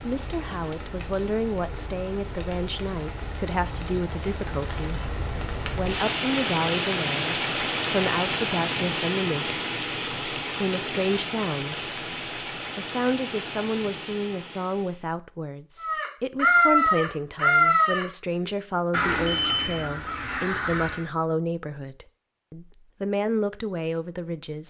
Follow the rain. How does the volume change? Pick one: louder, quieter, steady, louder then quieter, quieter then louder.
louder then quieter.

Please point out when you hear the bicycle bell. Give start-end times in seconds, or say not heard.
19.2-19.8.